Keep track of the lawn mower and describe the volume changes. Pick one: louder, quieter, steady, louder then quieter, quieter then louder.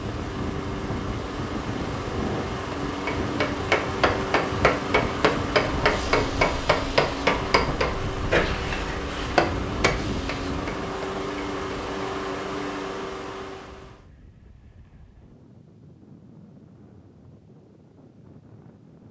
steady.